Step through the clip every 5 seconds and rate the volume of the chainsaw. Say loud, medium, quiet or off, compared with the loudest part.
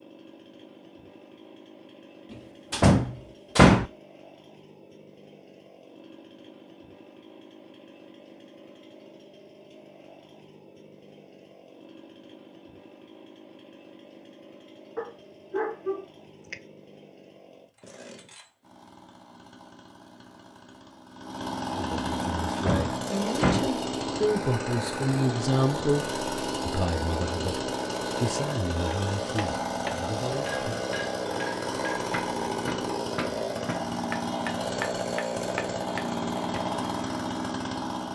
quiet, quiet, quiet, quiet, loud, loud, loud, loud.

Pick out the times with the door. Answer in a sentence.
The door can be heard from 2.7 to 3.9 s and from 22.6 to 23.7 s.